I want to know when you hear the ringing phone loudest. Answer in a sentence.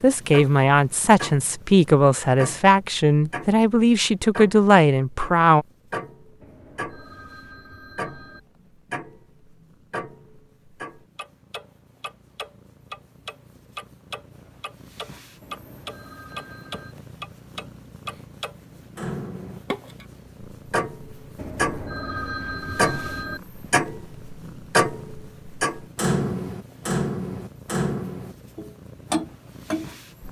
The loudest moment of the ringing phone is at 22 seconds.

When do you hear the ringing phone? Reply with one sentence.
The ringing phone can be heard from 6.4 to 8.4 s, from 15.4 to 16.9 s and from 21.4 to 23.4 s.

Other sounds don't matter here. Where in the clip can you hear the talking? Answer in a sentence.
The talking can be heard from 0.0 to 5.7 s.